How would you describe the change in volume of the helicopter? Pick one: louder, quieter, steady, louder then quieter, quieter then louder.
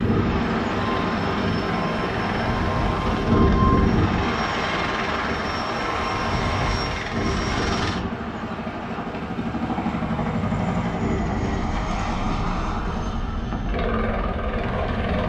steady.